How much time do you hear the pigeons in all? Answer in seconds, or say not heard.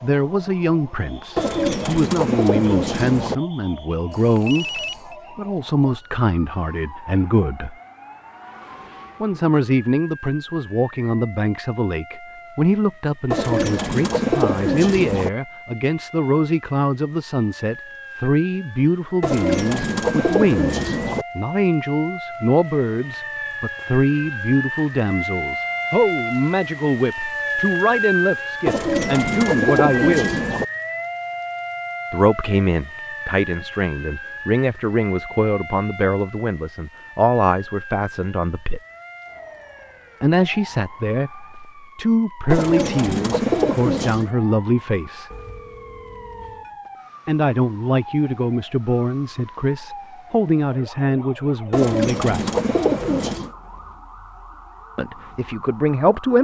12 s.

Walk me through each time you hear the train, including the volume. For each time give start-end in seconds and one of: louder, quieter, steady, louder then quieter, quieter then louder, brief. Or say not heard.
not heard.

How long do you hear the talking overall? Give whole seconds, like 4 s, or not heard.
47 s.